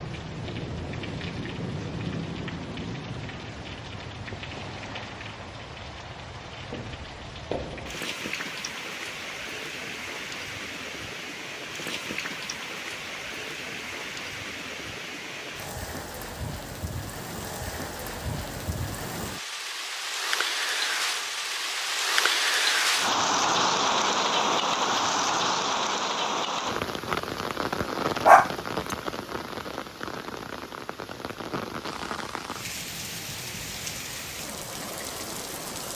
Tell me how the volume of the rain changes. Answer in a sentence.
The loudness of the rain goes up, then down.